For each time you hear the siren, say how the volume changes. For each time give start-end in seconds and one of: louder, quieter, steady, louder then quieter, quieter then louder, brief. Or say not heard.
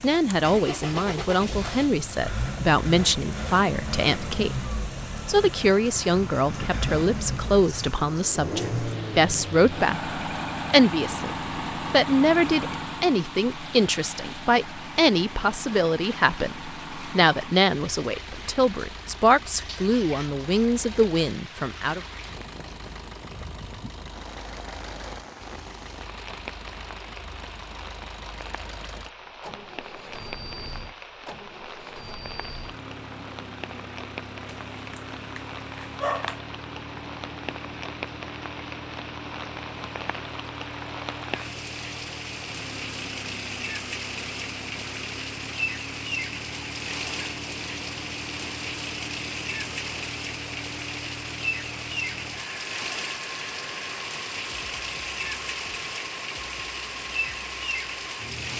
not heard.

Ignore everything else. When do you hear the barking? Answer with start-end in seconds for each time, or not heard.
34.5-36.4.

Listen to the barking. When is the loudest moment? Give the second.
36 s.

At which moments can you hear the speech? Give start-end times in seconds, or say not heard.
0.0-22.0.